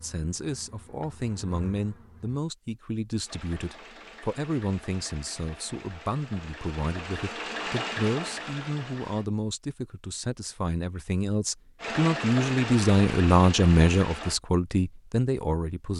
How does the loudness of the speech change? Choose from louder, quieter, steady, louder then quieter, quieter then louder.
louder.